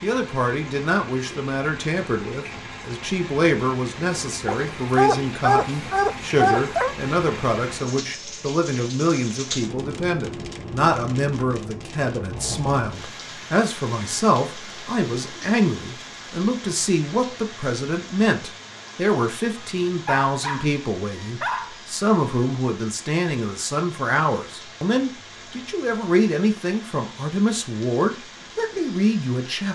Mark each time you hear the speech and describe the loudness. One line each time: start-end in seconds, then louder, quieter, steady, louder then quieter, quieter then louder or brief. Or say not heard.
0.0-29.6 steady.